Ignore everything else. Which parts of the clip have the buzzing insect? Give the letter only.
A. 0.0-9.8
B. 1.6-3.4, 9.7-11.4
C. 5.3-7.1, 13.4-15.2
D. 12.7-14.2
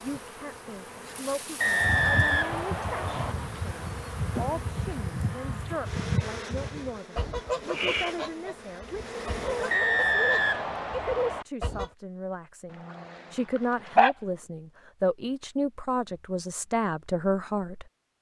A.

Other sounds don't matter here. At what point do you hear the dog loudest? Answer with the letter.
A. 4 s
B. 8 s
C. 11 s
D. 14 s
D.